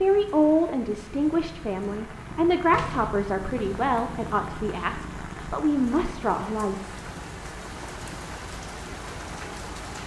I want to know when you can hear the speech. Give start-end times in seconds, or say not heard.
0.0-7.0.